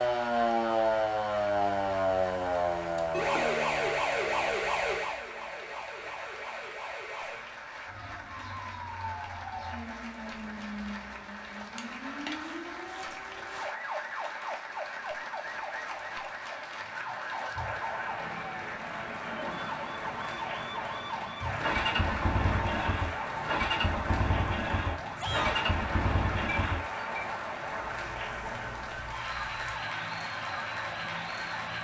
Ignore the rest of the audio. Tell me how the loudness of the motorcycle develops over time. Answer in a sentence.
The loudness of the motorcycle stays about the same.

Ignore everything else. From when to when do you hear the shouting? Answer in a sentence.
You can hear the shouting from 25.1 to 25.6 s.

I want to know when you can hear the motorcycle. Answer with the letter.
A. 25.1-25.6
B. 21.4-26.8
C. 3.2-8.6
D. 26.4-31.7
B.